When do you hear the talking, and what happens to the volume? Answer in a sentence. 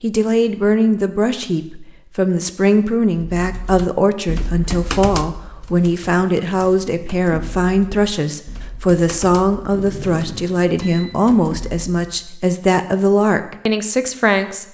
The talking can be heard from 0.0 to 14.6 s, at a steady volume.